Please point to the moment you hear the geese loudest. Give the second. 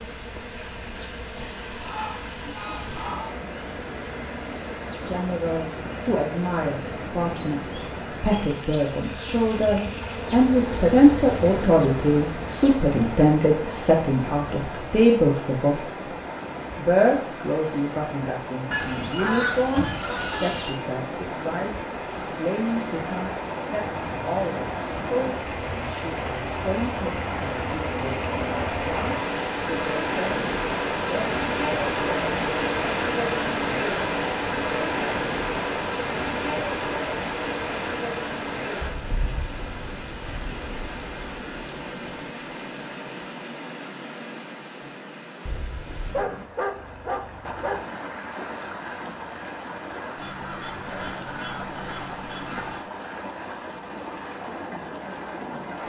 19 s.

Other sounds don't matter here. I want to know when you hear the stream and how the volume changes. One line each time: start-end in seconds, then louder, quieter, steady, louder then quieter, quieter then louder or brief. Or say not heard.
0.0-55.8 louder then quieter.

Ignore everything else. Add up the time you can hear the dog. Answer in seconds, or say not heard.
2 s.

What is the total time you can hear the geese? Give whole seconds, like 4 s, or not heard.
6 s.